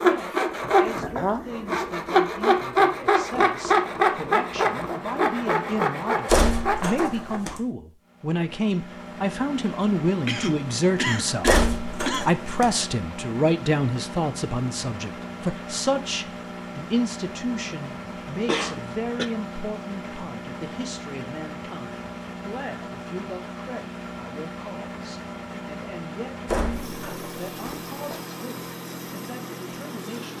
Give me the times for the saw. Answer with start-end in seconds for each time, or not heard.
0.0-7.5.